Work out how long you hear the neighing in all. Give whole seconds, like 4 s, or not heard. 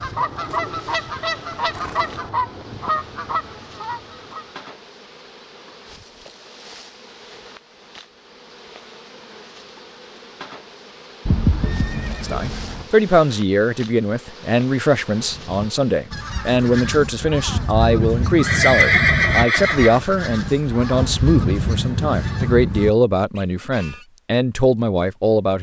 5 s.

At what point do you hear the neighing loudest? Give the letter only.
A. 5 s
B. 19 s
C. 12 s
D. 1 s
B.